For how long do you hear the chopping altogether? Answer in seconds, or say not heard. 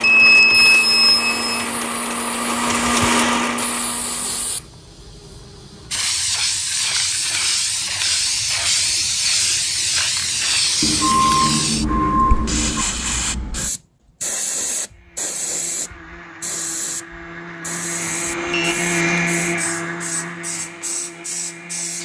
not heard.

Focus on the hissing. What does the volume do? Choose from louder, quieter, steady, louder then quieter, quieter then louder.
louder then quieter.